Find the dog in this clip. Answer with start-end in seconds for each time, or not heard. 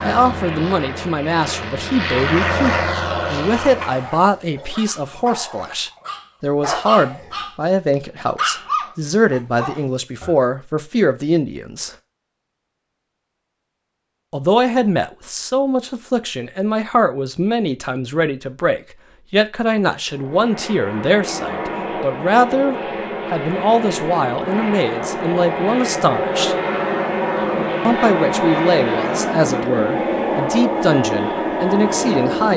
3.6-10.3.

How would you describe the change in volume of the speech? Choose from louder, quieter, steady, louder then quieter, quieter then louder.
steady.